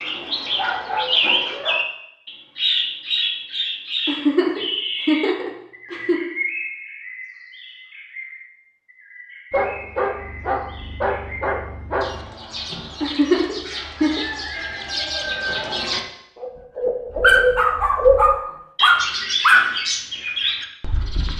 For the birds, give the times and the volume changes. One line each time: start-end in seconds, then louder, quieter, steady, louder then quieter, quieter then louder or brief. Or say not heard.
0.0-21.3 quieter then louder.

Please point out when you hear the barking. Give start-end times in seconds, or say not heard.
0.1-1.8, 9.5-12.2, 17.2-19.7.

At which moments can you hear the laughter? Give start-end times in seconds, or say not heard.
4.0-6.2, 13.0-14.2.